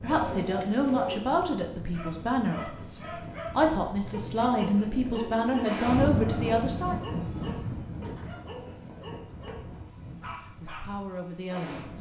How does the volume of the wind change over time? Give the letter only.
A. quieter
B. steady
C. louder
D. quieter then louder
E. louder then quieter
E.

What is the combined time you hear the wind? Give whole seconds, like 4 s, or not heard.
12 s.